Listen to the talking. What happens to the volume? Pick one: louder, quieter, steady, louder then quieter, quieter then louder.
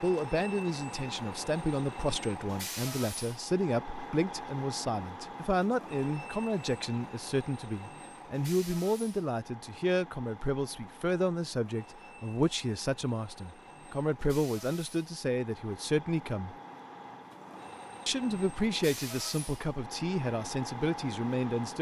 steady.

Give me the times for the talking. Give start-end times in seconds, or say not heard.
0.0-16.6, 18.1-21.7.